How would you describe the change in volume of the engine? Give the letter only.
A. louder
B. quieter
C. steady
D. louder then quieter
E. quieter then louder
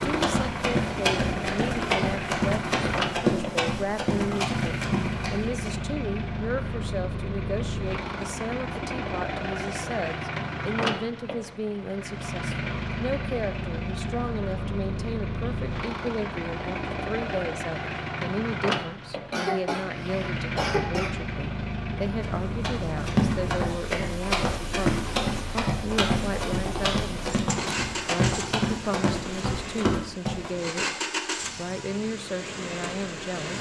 C.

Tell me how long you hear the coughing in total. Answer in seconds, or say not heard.
2 s.